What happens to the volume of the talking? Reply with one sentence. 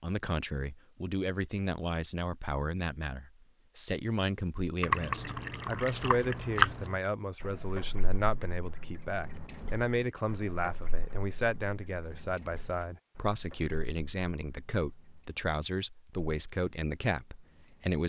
The volume of the talking stays about the same.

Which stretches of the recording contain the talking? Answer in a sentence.
You can hear the talking from 0.0 to 18.0 s.